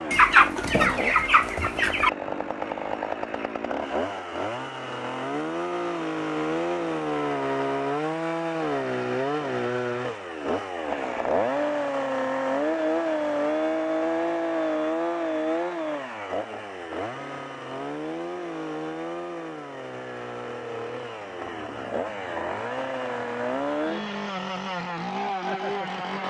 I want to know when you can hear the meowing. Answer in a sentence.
The meowing can't be heard in this clip.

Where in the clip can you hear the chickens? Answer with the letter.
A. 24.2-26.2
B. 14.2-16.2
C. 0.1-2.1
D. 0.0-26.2
C.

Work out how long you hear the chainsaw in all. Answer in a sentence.
You can hear the chainsaw for 26 seconds altogether.